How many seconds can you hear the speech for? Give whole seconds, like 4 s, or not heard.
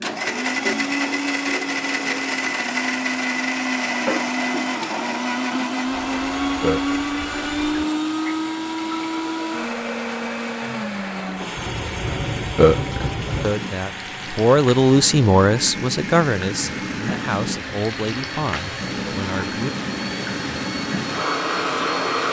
6 s.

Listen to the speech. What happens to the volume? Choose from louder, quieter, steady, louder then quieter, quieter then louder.
quieter.